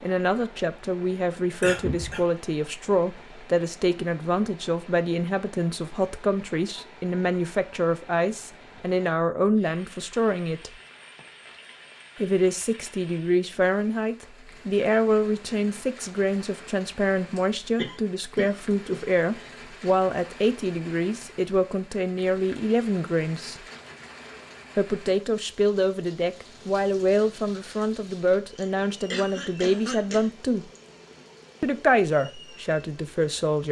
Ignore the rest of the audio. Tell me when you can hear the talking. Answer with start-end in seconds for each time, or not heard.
0.0-10.7, 12.2-23.6, 24.8-30.6, 31.6-33.6.